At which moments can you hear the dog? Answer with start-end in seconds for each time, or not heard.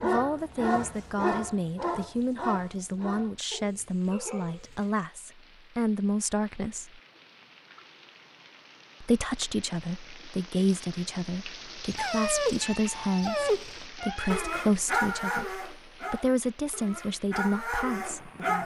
0.0-4.9, 11.9-18.6.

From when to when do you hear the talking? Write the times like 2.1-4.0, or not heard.
0.0-7.0, 9.0-18.6.